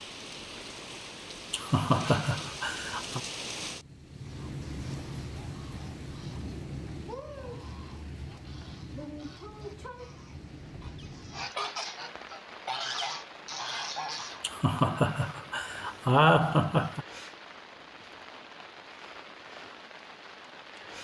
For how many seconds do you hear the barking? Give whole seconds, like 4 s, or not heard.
not heard.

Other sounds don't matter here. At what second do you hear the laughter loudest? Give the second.
16 s.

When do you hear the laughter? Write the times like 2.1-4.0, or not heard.
1.5-3.2, 14.4-17.1.